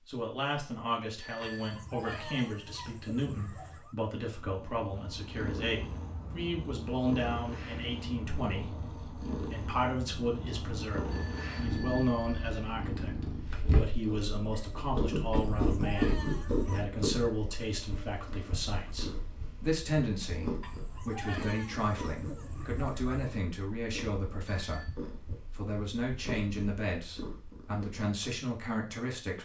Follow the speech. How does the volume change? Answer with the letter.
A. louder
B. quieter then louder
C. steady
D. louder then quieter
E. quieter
C.